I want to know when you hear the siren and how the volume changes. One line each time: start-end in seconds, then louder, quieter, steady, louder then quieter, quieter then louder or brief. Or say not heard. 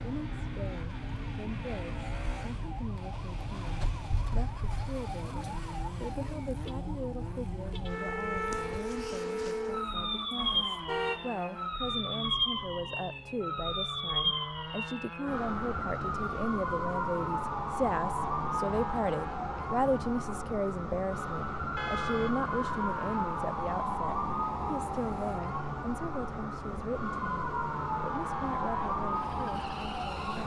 0.0-30.4 louder.